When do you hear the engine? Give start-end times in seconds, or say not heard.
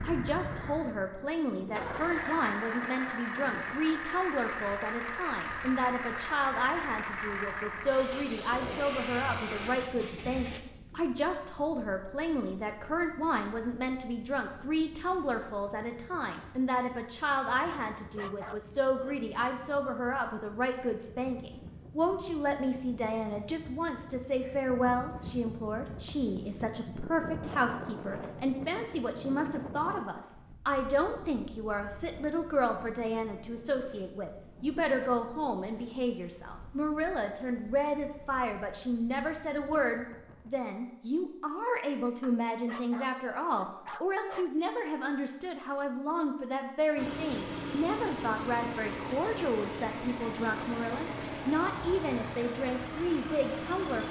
0.0-10.6, 47.0-54.0.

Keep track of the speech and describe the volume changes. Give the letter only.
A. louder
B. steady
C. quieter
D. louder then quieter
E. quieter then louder
B.